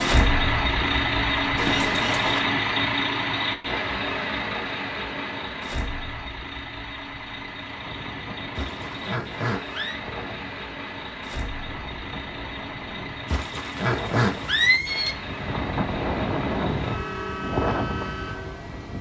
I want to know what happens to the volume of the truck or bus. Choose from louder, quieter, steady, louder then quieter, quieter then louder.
quieter.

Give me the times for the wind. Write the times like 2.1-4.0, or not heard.
7.5-18.9.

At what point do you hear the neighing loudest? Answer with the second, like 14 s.
15 s.